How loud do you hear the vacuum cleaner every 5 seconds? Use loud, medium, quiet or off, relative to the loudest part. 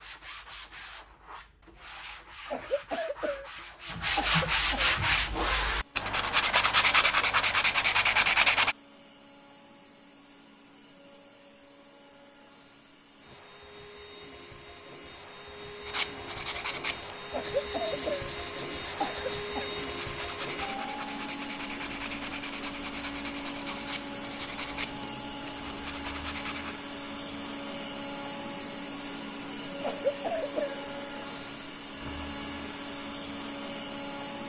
off, quiet, quiet, loud, loud, loud, loud.